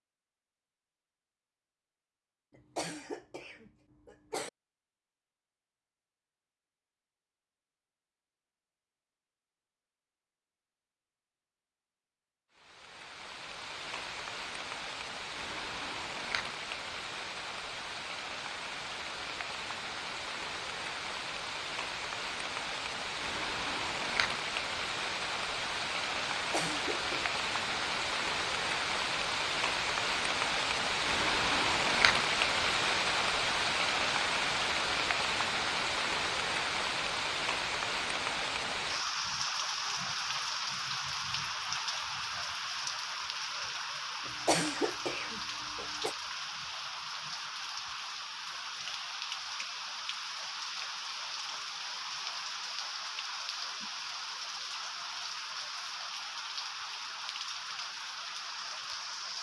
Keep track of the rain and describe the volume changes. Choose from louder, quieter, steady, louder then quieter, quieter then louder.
louder then quieter.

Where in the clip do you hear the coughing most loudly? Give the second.
45 s.